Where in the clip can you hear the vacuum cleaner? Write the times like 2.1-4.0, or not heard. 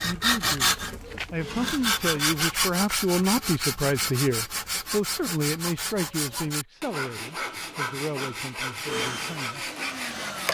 8.8-10.4.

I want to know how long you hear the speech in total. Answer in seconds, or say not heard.
10 s.